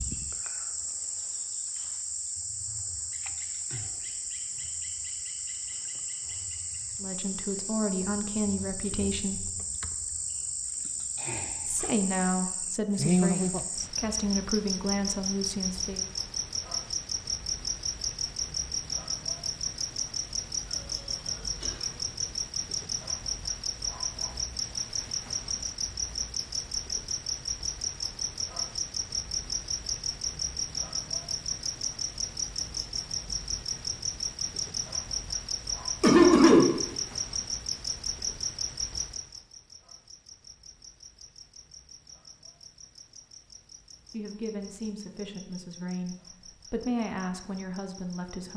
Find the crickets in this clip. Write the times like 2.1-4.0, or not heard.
0.0-48.5.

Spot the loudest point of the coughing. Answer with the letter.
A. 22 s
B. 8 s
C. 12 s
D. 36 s
D.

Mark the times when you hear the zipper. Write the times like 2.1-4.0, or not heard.
not heard.